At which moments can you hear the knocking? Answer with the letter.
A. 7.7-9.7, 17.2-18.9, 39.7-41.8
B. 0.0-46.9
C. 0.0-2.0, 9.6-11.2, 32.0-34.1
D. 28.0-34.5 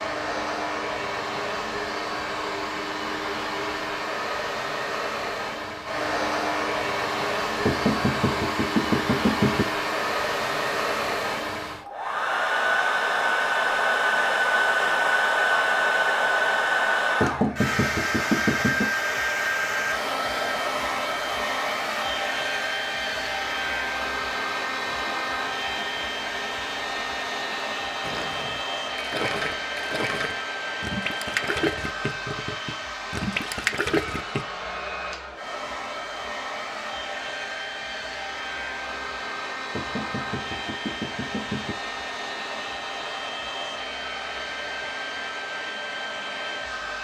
A.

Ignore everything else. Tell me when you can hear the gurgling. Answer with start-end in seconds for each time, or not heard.
28.0-34.5.